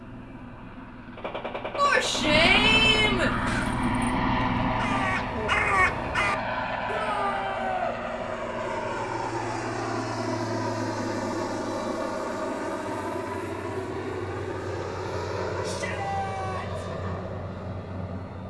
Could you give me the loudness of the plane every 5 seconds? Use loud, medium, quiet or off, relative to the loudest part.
loud, loud, loud, medium.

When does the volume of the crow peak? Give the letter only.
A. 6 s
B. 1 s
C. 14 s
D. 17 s
A.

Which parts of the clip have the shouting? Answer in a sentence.
You can hear the shouting from 1.8 to 3.3 s, from 6.8 to 8.0 s and from 15.6 to 16.9 s.